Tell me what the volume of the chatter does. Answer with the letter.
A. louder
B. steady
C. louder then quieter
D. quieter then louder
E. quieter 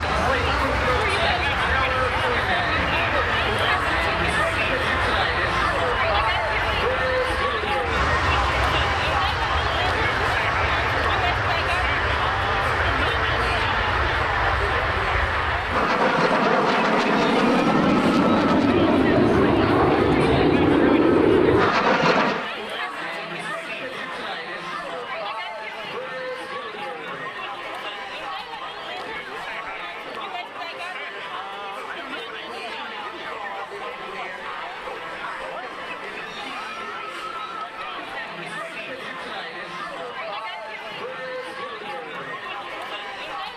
E.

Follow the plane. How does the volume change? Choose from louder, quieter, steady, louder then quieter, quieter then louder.
louder.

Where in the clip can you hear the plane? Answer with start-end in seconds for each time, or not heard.
0.0-22.4.